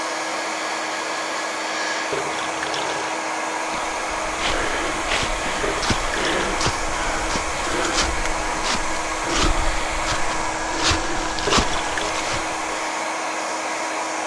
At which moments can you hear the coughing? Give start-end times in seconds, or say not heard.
not heard.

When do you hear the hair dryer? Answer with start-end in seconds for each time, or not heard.
0.0-14.2.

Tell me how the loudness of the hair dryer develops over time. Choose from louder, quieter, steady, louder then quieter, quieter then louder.
steady.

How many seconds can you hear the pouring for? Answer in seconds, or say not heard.
3 s.